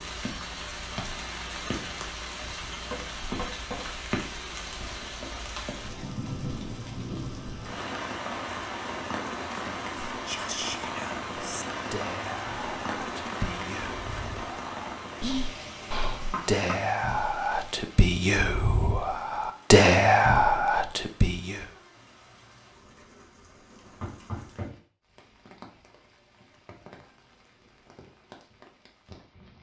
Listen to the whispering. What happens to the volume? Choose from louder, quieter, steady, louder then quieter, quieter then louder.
louder.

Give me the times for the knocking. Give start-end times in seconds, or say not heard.
2.9-3.9, 16.3-16.8, 24.0-24.8.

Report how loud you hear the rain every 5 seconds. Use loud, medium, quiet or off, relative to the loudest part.
loud, loud, loud, medium, quiet, quiet.